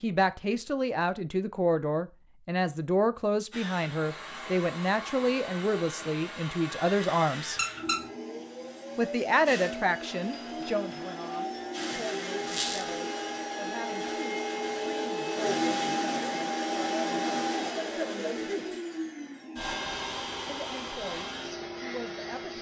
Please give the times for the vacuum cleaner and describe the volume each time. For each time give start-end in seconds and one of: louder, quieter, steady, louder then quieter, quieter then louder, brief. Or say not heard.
3.5-22.5 louder then quieter.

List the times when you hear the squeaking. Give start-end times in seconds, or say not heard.
7.5-8.1, 12.4-12.8.